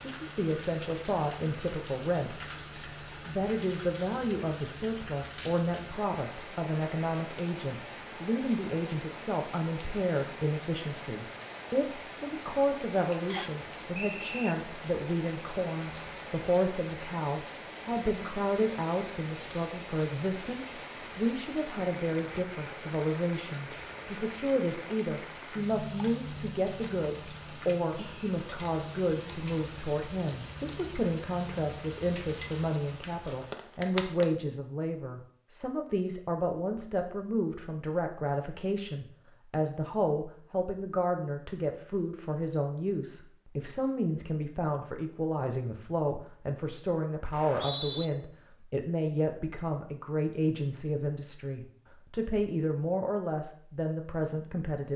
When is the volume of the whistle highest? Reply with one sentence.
The volume of the whistle peaks at 48 seconds.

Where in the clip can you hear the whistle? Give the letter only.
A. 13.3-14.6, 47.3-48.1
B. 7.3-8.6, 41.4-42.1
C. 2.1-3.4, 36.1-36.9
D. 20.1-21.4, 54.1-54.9
A.